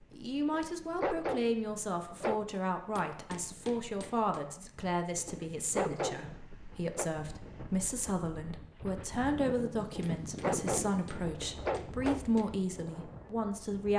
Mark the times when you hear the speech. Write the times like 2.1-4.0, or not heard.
0.1-13.9.